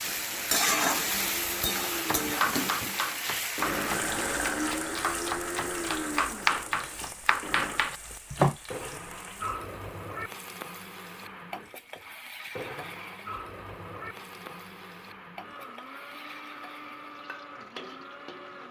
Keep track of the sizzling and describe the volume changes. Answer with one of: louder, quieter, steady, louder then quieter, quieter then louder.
quieter.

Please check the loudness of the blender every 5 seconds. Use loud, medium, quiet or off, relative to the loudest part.
loud, loud, medium, medium.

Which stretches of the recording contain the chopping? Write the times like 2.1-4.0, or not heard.
1.9-8.6.